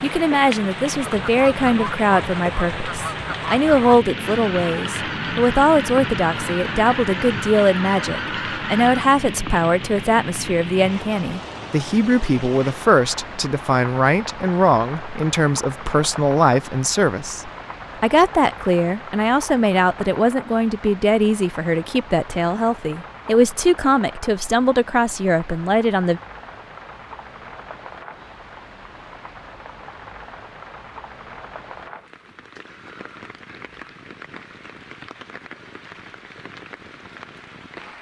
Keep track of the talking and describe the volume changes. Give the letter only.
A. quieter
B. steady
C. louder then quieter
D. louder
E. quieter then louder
B.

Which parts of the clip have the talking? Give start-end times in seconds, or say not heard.
0.0-26.2.